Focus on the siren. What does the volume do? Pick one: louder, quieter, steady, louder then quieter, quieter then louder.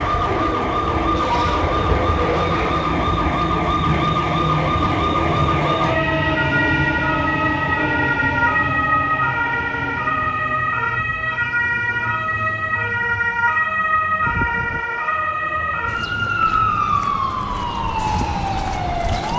steady.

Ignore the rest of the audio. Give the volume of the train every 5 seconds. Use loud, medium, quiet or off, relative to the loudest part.
loud, loud, medium, medium.